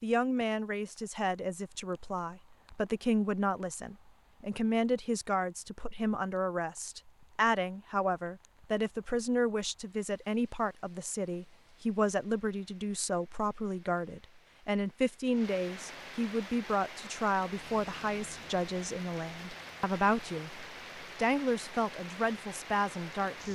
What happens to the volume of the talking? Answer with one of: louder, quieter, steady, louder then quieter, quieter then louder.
steady.